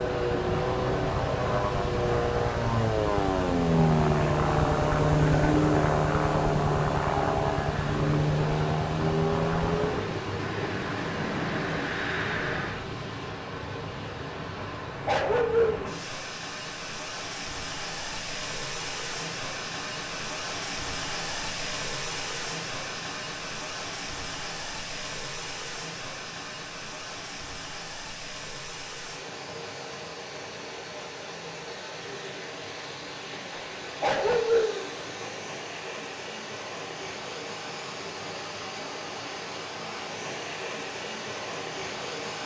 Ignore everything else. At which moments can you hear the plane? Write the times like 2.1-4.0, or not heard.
0.0-12.8.